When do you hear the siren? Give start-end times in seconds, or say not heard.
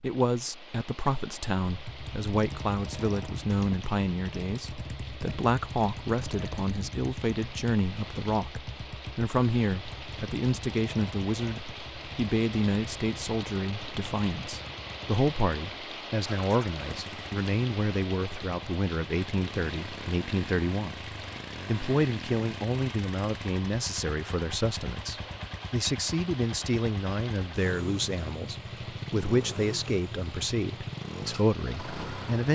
not heard.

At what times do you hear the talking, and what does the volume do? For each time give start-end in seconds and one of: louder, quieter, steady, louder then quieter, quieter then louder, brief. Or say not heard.
0.0-32.5 steady.